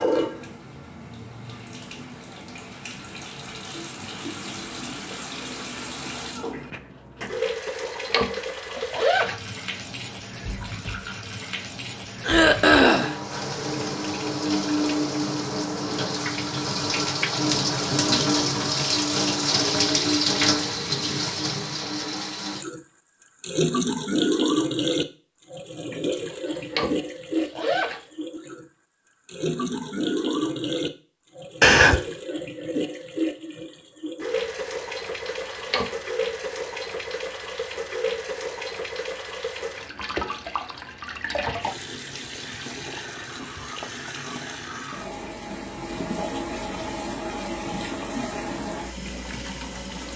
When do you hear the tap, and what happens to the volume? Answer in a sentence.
You can hear the tap from 0.0 to 50.1 s, getting louder then quieter.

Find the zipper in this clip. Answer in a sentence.
The zipper can be heard from 7.7 to 9.3 s, from 26.3 to 28.0 s and from 35.2 to 35.9 s.